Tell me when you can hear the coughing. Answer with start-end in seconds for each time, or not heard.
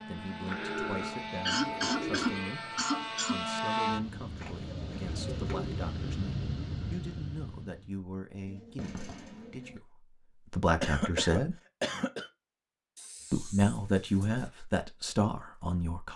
1.4-3.5, 10.8-12.3.